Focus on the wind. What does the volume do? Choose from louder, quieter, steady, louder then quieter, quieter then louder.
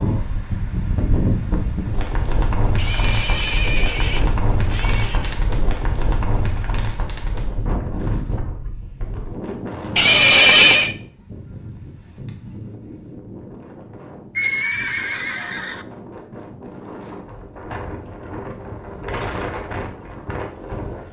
quieter then louder.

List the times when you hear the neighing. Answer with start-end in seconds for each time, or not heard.
2.8-5.5, 9.9-10.9, 14.3-15.8.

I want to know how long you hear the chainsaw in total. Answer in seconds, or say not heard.
not heard.